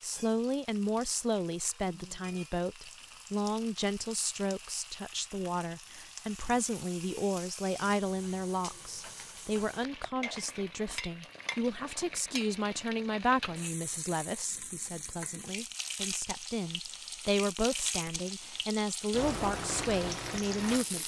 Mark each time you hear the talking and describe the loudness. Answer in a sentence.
You can hear the talking from 0.0 to 21.0 s, at a steady volume.